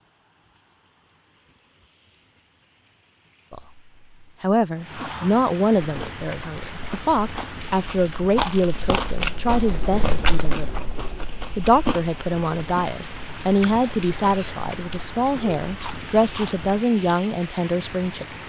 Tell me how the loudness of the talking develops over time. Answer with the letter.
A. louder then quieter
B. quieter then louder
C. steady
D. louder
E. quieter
C.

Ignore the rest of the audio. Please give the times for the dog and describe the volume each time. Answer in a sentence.
You can't hear the dog here.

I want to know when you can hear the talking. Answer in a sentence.
The talking can be heard from 3.5 to 10.7 s and from 11.6 to 18.4 s.